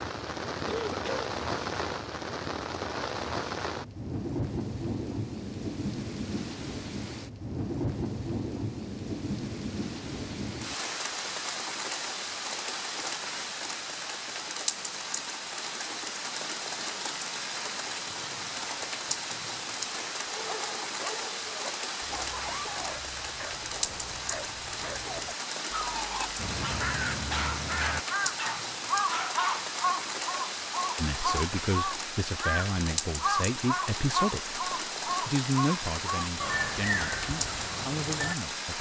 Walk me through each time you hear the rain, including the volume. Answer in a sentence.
You can hear the rain from 0.0 to 38.7 s, at a steady volume.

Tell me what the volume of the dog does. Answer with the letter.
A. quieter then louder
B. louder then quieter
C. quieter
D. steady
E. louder
E.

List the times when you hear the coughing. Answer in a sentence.
The coughing can be heard from 0.7 to 1.3 s.